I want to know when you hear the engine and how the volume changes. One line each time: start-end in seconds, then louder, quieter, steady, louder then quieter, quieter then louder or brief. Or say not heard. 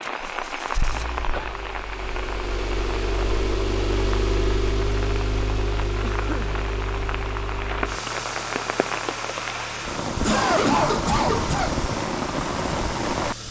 0.0-13.4 louder then quieter.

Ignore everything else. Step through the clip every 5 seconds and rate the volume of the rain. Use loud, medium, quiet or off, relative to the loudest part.
medium, medium, loud.